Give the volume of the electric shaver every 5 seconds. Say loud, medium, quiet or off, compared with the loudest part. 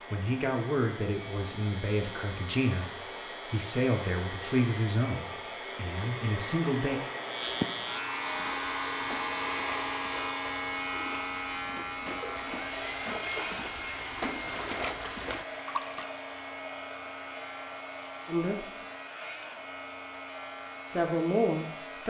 quiet, loud, loud, medium, medium.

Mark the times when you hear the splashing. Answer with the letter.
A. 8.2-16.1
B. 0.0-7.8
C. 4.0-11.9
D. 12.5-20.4
A.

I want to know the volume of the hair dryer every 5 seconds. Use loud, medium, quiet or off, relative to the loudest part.
medium, loud, loud, medium, medium.